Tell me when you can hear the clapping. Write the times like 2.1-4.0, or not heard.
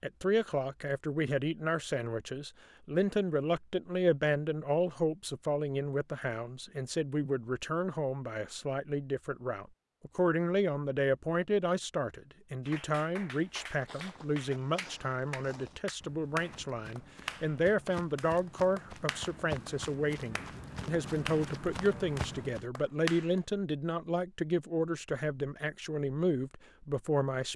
12.7-19.8, 20.4-23.4.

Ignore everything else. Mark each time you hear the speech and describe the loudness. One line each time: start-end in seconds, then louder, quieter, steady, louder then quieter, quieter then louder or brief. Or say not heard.
0.0-27.5 steady.